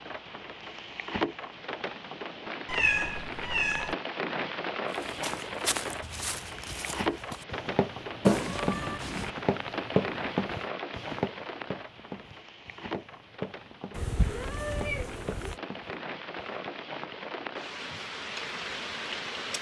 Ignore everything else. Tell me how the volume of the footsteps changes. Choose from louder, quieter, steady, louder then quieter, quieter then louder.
louder then quieter.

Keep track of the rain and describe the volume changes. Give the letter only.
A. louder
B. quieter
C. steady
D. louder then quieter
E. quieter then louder
E.